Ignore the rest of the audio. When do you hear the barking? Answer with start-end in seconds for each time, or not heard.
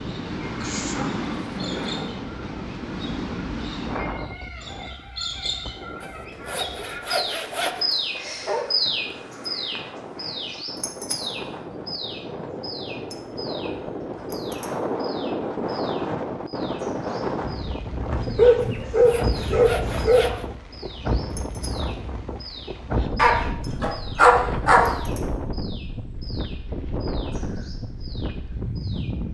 0.4-2.2, 8.4-9.2, 18.1-20.4, 23.1-24.9.